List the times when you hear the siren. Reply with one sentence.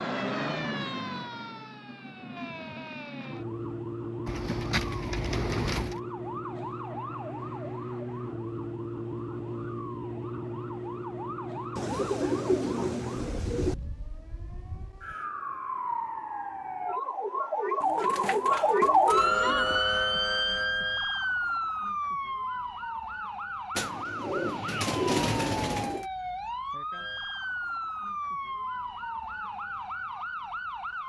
You can hear the siren from 0.0 to 31.0 s.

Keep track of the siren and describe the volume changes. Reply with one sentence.
The volume of the siren goes up, then down.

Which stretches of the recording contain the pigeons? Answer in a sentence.
The pigeons can be heard from 4.2 to 6.0 s, from 11.8 to 13.8 s, from 17.8 to 19.8 s and from 23.8 to 26.1 s.